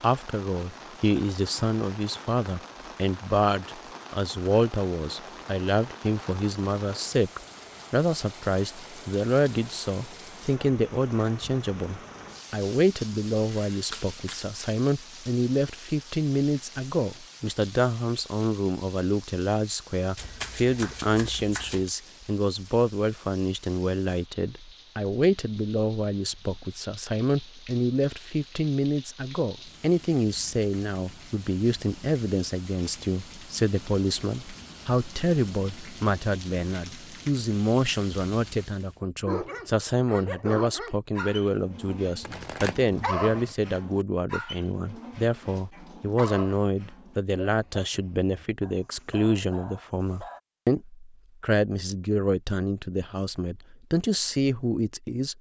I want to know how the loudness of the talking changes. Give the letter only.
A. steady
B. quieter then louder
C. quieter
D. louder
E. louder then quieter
A.